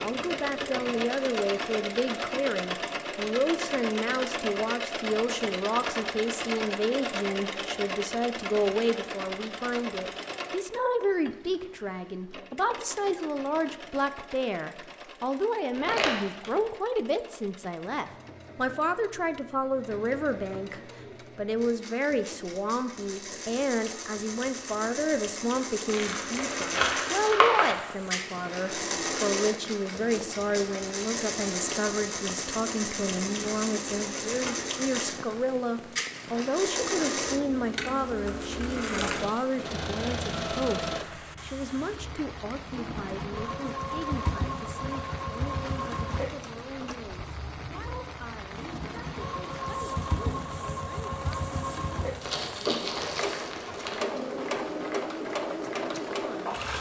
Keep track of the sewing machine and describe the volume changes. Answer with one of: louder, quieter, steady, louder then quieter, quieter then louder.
quieter then louder.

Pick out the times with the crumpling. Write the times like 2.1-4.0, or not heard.
15.8-16.5, 25.9-27.9, 52.2-54.0.